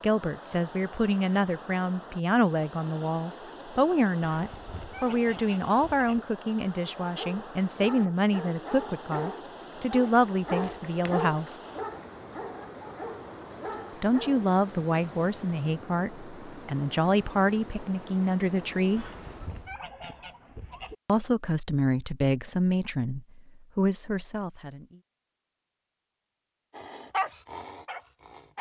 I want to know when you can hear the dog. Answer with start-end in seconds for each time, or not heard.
7.0-14.5, 26.8-28.5.